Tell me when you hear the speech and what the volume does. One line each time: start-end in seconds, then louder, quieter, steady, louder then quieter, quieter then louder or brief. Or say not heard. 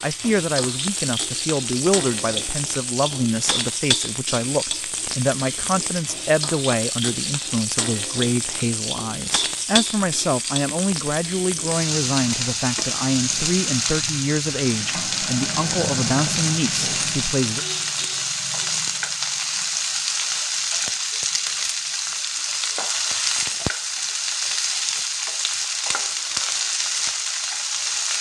0.0-17.6 steady.